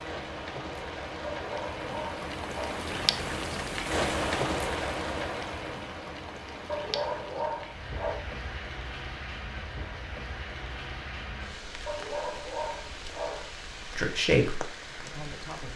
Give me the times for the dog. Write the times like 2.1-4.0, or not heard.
1.3-2.8, 6.7-8.2, 11.8-13.6.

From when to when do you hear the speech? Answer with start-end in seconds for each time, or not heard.
13.9-15.7.